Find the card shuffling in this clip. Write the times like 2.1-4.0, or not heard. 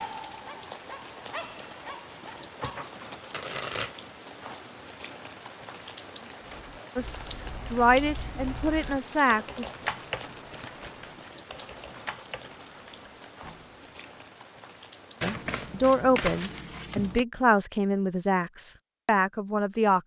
2.6-4.0, 9.8-11.1, 15.2-17.2.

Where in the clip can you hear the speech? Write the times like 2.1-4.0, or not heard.
7.0-9.7, 15.2-20.0.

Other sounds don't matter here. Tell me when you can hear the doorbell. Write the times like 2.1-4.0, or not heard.
not heard.